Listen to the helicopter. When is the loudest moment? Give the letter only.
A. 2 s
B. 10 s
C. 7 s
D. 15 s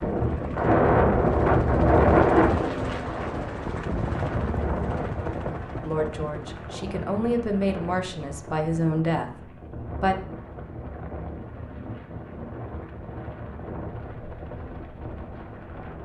A.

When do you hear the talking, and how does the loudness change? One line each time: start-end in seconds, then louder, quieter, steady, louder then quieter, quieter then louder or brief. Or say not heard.
5.8-10.2 louder.